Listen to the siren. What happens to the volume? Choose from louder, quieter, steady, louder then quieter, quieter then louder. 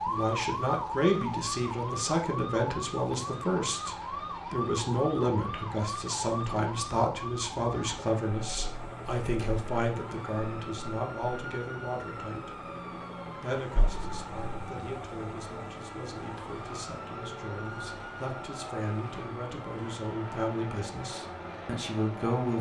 quieter.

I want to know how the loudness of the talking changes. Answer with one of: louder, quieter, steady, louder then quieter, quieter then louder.
quieter then louder.